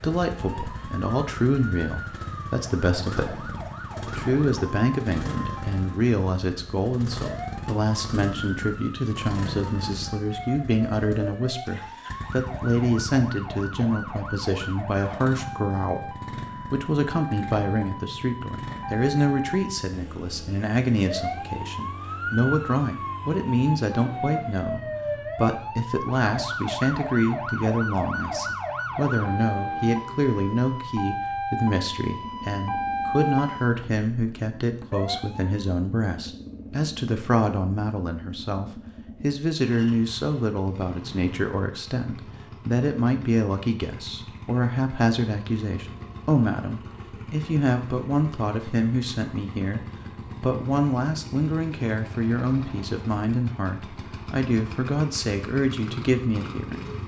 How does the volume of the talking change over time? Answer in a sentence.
The volume of the talking stays about the same.